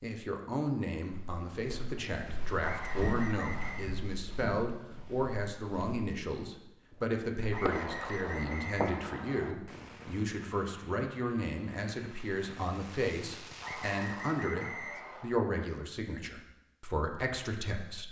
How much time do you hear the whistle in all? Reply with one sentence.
You can hear the whistle for 5 seconds altogether.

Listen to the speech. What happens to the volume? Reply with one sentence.
The loudness of the speech stays about the same.